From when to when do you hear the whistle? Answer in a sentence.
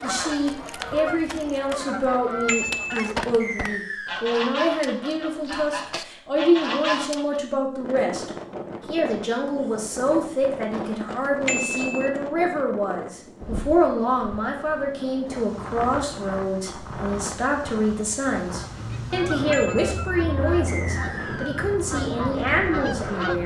The whistle can be heard from 3.4 to 4.2 s and from 20.6 to 21.6 s.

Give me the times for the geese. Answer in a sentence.
The geese can be heard from 0.0 to 7.4 s and from 18.6 to 23.4 s.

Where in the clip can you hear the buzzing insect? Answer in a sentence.
You can't hear the buzzing insect here.